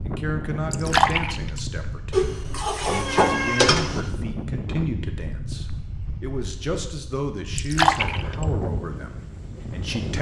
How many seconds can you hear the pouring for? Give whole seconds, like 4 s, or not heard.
2 s.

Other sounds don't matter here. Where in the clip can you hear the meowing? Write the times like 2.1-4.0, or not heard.
2.1-4.0.